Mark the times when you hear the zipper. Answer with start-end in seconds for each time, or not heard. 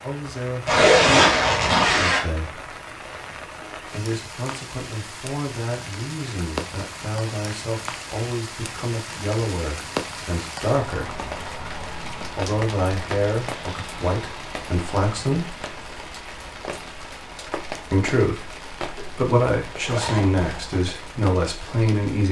0.7-2.2, 18.9-20.8.